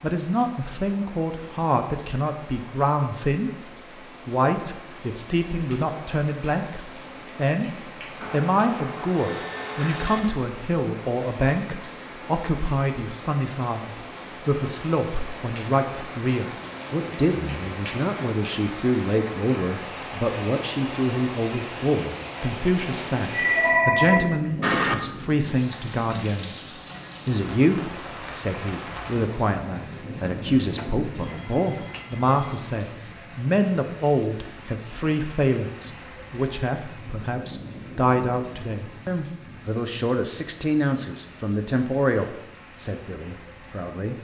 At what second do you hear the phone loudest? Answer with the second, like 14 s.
24 s.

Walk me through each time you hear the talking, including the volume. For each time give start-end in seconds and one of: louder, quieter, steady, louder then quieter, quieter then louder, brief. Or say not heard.
0.0-44.1 steady.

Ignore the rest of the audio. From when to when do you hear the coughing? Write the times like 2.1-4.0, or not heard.
not heard.